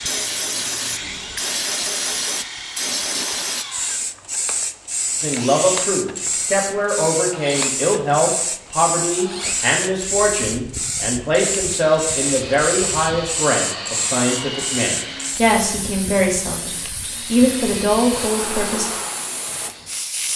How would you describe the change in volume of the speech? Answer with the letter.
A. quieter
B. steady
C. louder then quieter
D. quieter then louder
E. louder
B.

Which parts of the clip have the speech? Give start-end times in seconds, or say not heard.
5.2-18.9.